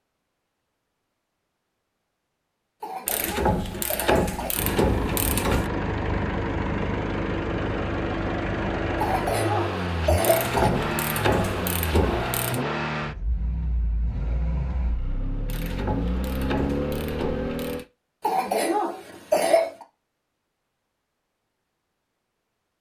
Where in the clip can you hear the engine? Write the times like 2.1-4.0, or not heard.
4.5-17.9.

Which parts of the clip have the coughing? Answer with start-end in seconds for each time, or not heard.
2.8-4.5, 9.0-10.7, 18.2-19.9.